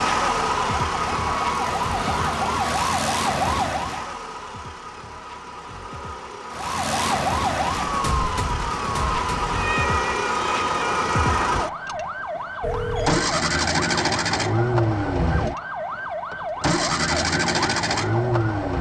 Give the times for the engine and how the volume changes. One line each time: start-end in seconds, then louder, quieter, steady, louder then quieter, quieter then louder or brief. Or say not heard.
0.0-18.7 quieter then louder.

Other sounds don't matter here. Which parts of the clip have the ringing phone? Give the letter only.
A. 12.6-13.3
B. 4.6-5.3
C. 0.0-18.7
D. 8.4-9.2
A.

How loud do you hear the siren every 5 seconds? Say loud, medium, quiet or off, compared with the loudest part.
loud, loud, medium, medium.